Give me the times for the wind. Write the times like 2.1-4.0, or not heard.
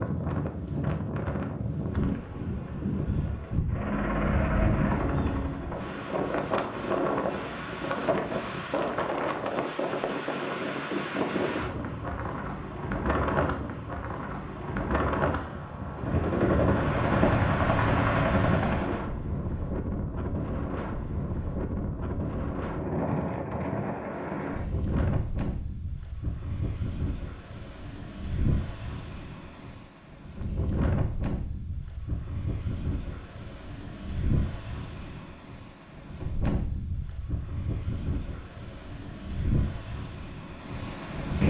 0.0-41.4.